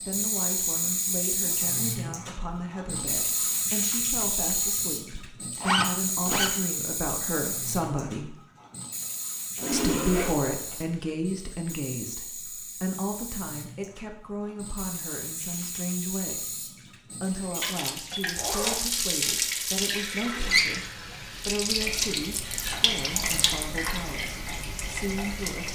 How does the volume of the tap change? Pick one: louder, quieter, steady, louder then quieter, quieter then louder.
quieter then louder.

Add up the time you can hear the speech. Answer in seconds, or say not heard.
24 s.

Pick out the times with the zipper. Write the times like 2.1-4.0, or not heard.
5.6-6.5, 9.6-10.8, 18.4-18.9.